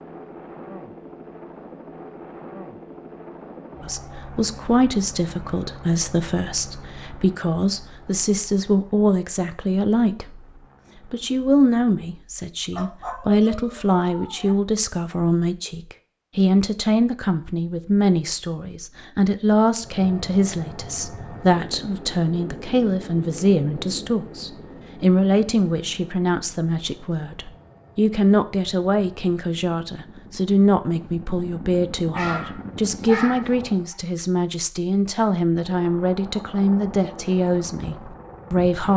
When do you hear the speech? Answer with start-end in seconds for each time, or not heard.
3.8-10.4, 11.1-38.9.